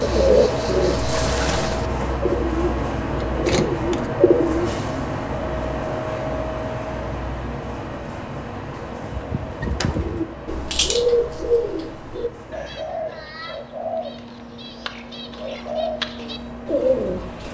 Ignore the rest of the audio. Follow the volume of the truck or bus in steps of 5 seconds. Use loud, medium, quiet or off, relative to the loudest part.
loud, loud, quiet, medium.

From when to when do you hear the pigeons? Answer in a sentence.
You can hear the pigeons from 0.0 to 4.7 s and from 9.0 to 17.5 s.